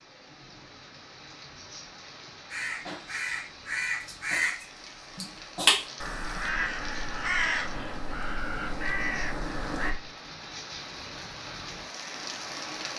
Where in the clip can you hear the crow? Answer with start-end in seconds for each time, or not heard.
2.5-9.9.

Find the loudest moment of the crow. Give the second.
6 s.